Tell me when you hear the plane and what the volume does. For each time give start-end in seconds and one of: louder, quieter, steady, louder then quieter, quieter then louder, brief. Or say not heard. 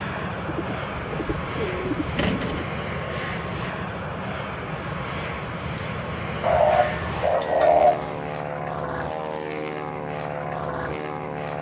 0.0-11.5 steady.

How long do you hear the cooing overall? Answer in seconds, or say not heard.
4 s.